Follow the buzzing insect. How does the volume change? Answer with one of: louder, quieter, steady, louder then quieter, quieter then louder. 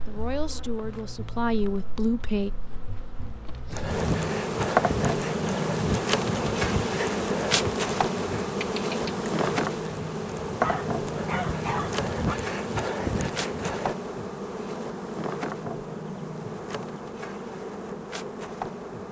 louder then quieter.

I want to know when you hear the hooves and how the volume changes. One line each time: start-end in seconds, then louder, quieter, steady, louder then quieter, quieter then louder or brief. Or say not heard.
3.6-13.9 quieter then louder.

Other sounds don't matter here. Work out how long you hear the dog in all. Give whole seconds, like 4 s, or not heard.
2 s.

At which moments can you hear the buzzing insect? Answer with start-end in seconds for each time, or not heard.
0.0-19.0.